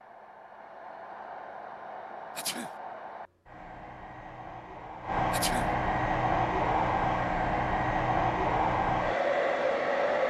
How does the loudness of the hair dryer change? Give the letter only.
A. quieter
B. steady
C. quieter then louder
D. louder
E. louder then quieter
D.